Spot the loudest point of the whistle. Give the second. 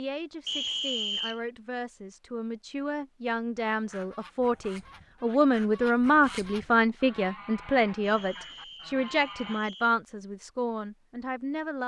1 s.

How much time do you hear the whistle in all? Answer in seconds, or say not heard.
3 s.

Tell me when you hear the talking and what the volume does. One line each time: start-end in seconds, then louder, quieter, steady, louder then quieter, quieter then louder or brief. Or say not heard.
0.0-11.8 louder then quieter.